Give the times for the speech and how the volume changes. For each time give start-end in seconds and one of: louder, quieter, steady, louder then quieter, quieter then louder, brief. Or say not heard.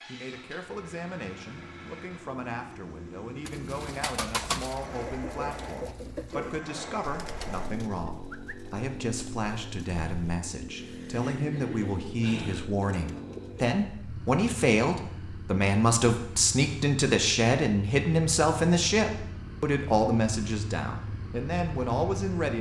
0.1-22.5 louder.